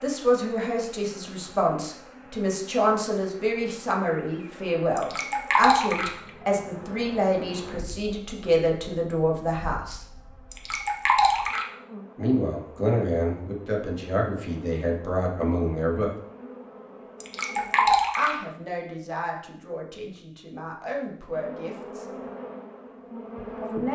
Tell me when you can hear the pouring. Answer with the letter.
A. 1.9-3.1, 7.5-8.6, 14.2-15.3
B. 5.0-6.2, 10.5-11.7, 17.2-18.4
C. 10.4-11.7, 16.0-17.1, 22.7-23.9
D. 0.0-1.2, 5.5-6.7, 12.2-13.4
B.